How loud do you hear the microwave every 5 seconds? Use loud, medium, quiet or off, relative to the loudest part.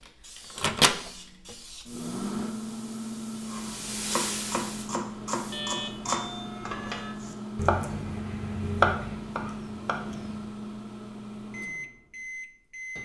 loud, medium, medium.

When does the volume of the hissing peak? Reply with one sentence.
The volume of the hissing peaks at 4 seconds.